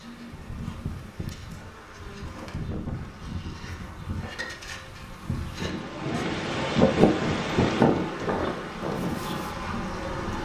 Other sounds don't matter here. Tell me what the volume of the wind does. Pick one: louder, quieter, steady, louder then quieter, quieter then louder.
louder then quieter.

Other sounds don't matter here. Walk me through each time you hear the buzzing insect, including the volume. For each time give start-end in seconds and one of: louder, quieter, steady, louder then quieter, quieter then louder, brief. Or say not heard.
0.0-10.4 louder.